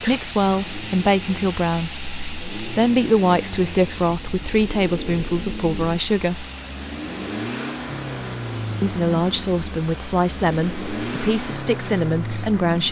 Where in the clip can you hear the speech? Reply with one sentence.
You can hear the speech from 0.0 to 6.5 s and from 8.8 to 12.8 s.